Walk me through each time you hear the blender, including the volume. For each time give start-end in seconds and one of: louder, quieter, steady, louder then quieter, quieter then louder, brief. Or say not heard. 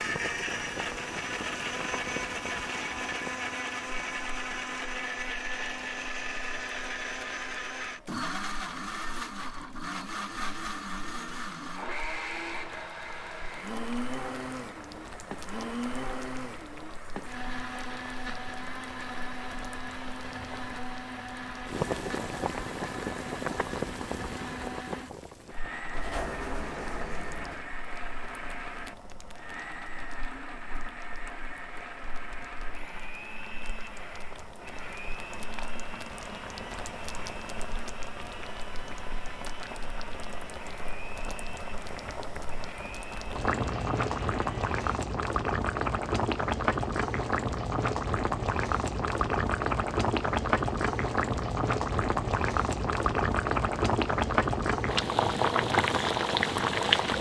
0.0-44.8 quieter.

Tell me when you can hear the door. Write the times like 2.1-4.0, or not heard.
25.9-27.6.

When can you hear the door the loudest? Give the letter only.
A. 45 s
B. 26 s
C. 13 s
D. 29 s
B.